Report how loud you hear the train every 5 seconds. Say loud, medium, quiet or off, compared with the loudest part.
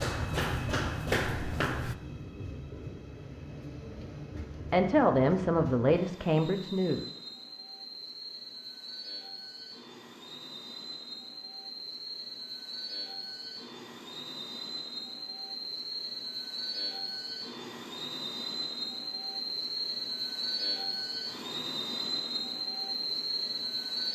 medium, medium, medium, loud, loud.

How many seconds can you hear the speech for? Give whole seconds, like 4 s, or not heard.
2 s.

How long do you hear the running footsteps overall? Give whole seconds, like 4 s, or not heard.
2 s.